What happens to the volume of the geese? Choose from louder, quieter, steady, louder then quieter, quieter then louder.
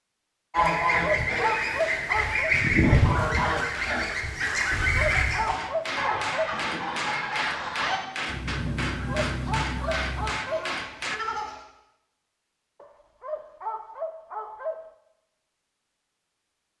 quieter.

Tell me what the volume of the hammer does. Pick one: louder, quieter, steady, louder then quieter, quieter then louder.
louder.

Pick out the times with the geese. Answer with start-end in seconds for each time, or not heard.
0.5-11.6.